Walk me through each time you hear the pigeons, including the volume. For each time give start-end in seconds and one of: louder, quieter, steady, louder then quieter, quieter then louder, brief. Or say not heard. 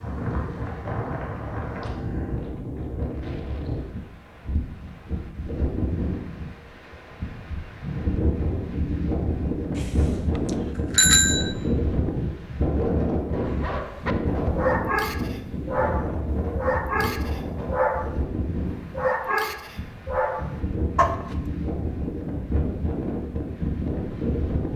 not heard.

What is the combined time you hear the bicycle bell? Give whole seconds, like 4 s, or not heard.
2 s.